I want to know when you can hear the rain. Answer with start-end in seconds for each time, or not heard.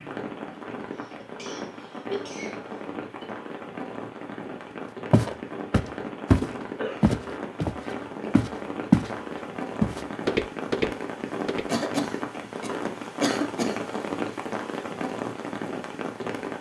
0.0-16.5.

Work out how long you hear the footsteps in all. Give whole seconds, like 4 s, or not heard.
6 s.